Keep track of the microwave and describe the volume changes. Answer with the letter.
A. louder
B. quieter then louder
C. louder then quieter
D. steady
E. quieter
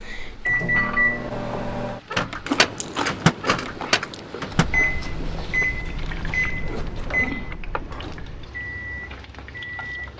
E.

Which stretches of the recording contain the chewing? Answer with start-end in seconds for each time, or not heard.
2.5-7.9.